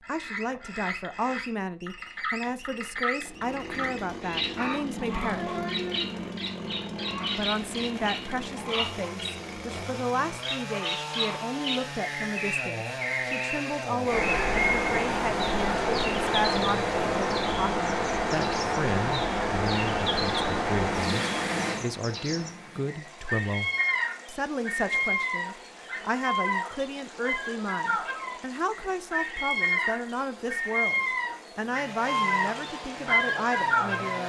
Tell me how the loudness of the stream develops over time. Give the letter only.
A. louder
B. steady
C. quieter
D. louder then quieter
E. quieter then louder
C.